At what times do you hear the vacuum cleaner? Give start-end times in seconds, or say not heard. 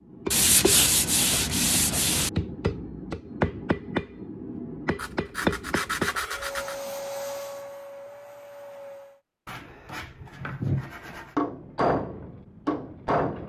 6.3-9.2.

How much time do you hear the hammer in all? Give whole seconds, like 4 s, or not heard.
8 s.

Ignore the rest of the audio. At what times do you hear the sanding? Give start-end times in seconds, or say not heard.
0.3-2.3, 5.0-6.8, 9.4-11.3.